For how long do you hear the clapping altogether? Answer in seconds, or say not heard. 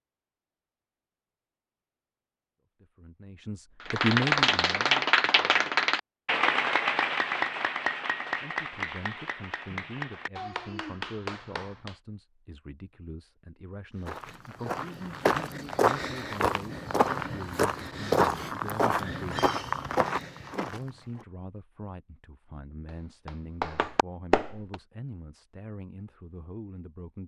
10 s.